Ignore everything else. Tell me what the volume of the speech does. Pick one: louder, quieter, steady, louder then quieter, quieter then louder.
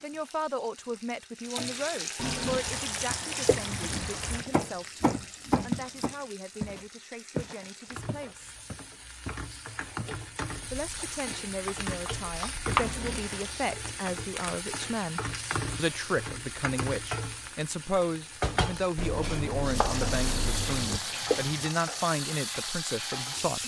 quieter then louder.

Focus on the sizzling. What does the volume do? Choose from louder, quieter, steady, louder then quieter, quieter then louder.
quieter then louder.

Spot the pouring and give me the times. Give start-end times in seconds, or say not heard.
2.1-4.5, 12.8-13.7, 20.1-21.7.